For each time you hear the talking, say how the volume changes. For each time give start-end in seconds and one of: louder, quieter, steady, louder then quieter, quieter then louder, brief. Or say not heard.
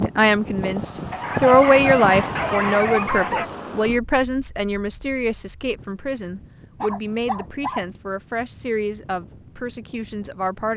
0.0-10.7 quieter.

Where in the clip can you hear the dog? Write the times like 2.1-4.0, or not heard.
1.1-3.5, 6.8-8.0.